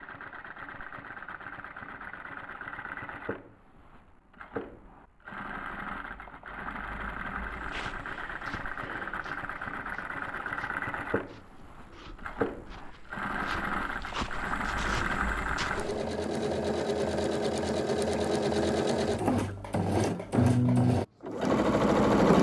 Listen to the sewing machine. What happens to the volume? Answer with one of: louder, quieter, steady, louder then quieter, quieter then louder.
louder.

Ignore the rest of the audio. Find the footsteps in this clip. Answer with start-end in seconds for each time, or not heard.
7.5-16.1.